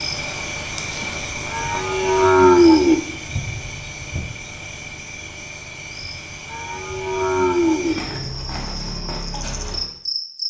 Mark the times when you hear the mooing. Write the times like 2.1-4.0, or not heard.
1.5-3.0, 6.5-8.0.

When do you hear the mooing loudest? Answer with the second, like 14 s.
3 s.